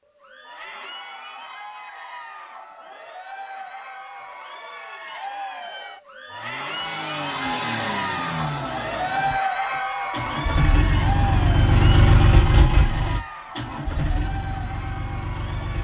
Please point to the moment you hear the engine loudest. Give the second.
12 s.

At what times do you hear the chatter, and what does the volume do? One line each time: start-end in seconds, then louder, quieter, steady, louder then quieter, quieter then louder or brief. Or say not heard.
0.1-15.8 louder then quieter.